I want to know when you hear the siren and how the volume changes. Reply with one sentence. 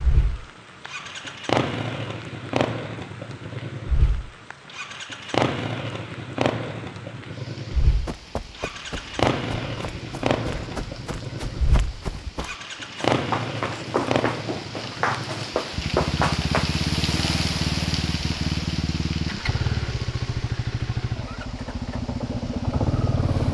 The siren can't be heard in this clip.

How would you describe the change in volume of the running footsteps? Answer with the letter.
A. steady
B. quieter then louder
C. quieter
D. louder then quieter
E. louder
E.